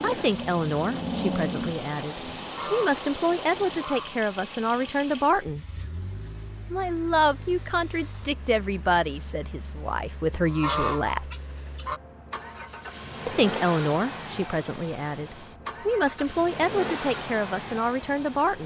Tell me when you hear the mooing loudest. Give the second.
1 s.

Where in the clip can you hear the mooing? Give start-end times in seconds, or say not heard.
0.0-2.5.